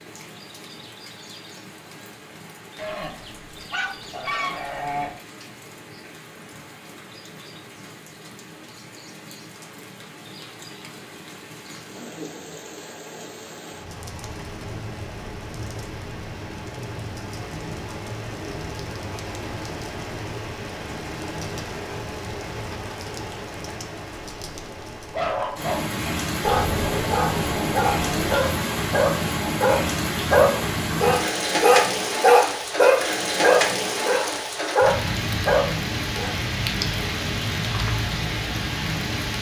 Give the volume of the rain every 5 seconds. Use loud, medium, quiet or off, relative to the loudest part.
quiet, quiet, quiet, medium, medium, loud, loud, loud.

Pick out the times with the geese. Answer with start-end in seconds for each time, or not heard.
2.8-5.1, 26.4-28.4.